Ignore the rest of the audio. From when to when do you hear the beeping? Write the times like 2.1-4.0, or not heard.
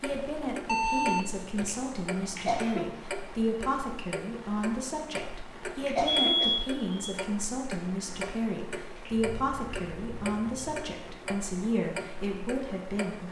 0.7-1.6, 6.0-7.2, 9.1-10.8.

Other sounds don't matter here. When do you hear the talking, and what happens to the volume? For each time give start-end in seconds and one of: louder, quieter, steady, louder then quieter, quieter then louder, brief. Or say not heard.
0.0-13.2 steady.